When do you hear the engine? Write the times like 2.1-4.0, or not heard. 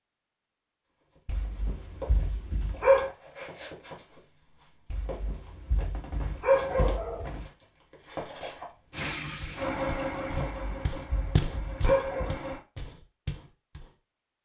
8.9-12.7.